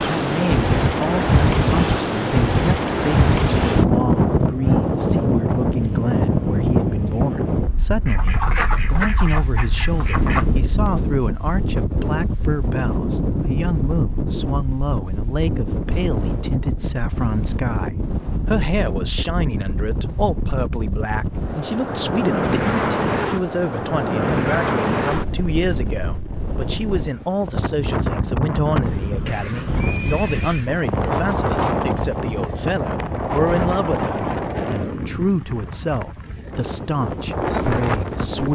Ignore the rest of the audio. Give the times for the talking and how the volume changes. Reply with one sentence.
The talking can be heard from 0.0 to 38.4 s, at a steady volume.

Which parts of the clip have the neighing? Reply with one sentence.
You can hear the neighing from 29.2 to 30.8 s.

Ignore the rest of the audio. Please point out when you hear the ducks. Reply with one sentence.
The ducks can be heard from 8.1 to 10.6 s.